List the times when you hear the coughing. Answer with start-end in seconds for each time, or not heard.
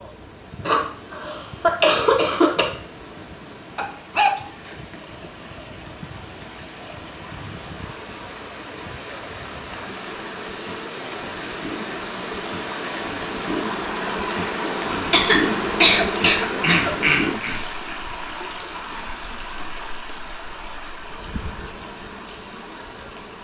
0.7-2.6, 15.1-17.6.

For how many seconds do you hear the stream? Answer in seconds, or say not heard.
23 s.